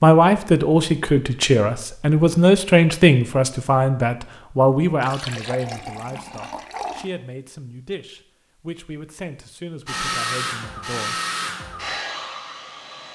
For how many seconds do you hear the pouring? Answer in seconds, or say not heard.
2 s.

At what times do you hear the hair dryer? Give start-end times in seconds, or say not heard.
9.8-13.1.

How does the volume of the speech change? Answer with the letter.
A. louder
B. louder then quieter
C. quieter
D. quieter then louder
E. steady
C.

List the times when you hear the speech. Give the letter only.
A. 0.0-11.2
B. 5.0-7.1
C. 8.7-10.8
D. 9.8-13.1
A.